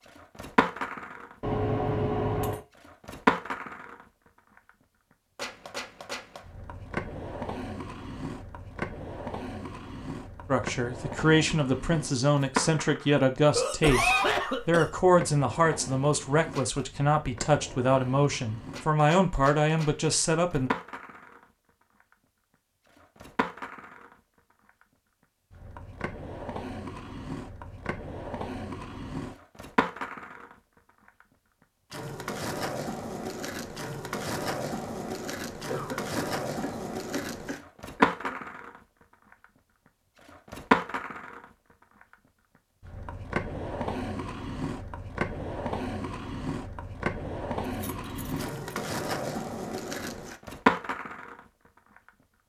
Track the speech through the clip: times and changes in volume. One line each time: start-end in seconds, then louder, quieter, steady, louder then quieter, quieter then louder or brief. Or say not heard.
10.5-20.7 steady.